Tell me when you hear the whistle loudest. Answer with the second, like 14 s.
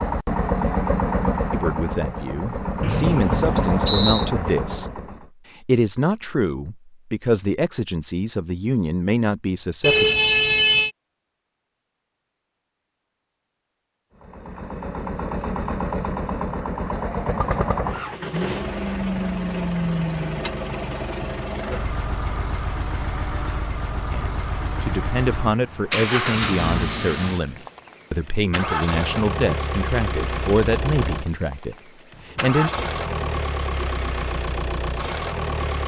4 s.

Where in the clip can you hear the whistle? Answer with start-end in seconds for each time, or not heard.
2.8-4.3.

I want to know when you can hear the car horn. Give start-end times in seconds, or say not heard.
9.8-10.9.